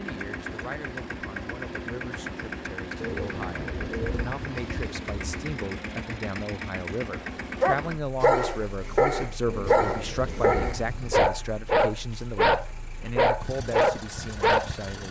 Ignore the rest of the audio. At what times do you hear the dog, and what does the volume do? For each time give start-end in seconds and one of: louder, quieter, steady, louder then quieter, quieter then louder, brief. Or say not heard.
7.6-14.7 steady.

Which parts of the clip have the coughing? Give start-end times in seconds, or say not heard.
not heard.